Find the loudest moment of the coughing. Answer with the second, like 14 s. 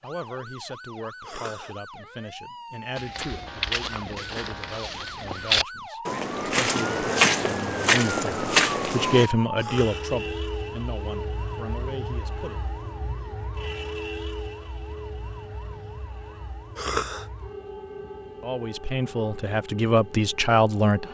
17 s.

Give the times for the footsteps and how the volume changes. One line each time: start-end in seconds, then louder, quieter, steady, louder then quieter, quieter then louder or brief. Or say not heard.
3.0-9.3 louder.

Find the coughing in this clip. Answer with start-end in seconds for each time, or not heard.
1.2-1.8, 9.6-10.1, 16.8-17.2.